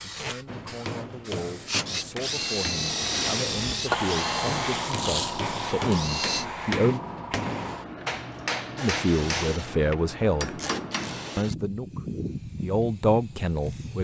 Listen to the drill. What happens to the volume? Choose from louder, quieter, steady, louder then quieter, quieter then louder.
quieter.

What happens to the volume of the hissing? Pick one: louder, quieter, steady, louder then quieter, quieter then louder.
louder then quieter.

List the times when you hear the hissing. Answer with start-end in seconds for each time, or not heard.
0.0-14.0.